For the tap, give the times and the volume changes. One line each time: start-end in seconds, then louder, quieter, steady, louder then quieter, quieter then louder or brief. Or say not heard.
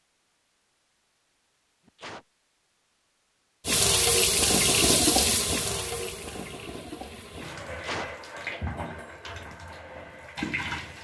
3.6-10.9 quieter.